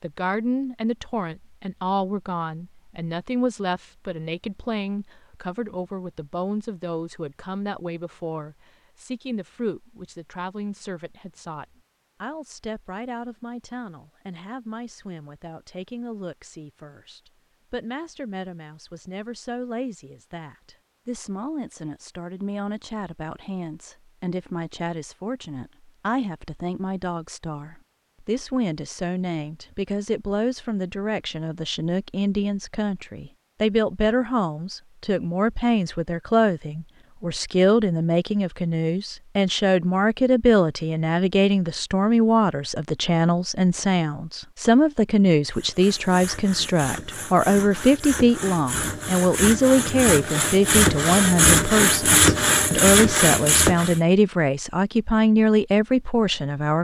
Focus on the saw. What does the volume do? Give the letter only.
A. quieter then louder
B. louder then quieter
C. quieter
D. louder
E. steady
D.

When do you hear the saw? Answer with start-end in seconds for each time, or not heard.
45.5-54.0.